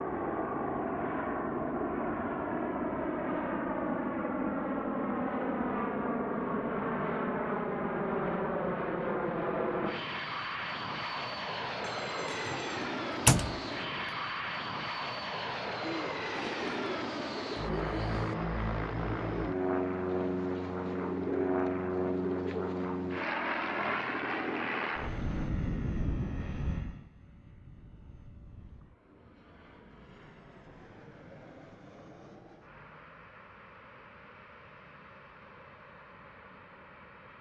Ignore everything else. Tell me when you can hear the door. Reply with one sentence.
You can hear the door from 12.4 to 13.7 s.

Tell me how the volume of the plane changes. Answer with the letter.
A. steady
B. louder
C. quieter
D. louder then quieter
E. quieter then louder
C.